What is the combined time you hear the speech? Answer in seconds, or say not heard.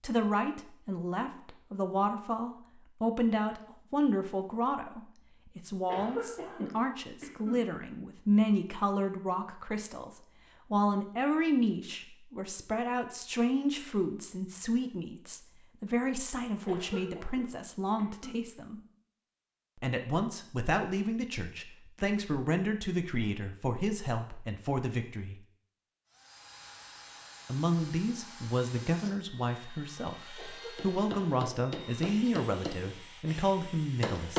31 s.